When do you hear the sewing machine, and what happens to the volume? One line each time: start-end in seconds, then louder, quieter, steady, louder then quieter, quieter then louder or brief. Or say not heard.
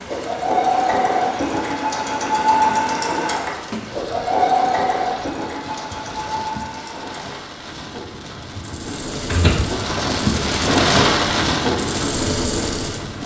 0.0-13.2 quieter then louder.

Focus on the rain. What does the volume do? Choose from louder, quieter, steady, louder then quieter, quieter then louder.
louder.